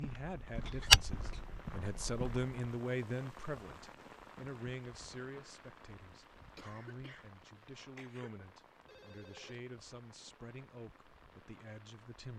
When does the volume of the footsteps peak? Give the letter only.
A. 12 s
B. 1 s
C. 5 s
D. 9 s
B.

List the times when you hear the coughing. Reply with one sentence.
The coughing can be heard from 0.7 to 1.4 s, from 6.5 to 7.2 s and from 8.0 to 8.4 s.